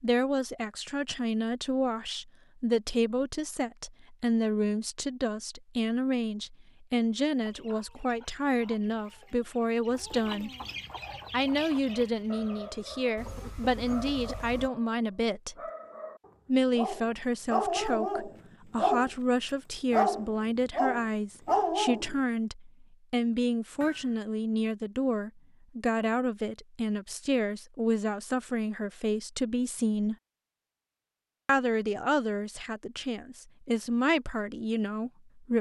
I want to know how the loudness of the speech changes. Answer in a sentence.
The loudness of the speech stays about the same.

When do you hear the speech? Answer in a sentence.
You can hear the speech from 0.0 to 10.5 s, from 11.3 to 15.6 s, from 16.4 to 30.1 s and from 31.4 to 35.5 s.